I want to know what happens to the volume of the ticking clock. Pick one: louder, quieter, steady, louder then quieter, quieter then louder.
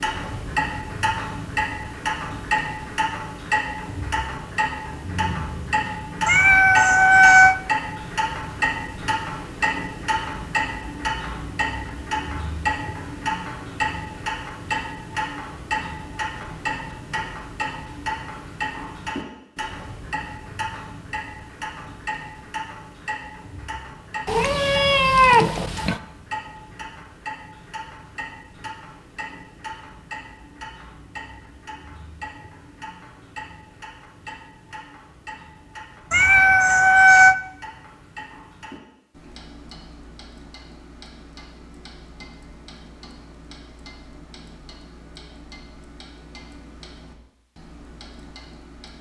quieter.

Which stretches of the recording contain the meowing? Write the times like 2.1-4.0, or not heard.
6.2-7.5, 24.2-26.0, 36.1-37.4.